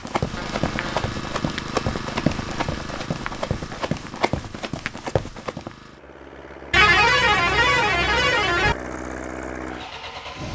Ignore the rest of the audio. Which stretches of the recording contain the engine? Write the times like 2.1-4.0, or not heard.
0.1-10.5.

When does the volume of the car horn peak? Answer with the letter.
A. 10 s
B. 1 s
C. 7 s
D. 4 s
C.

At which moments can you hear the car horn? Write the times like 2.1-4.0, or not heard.
0.3-1.1, 6.7-8.8.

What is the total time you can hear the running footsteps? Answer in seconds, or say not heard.
6 s.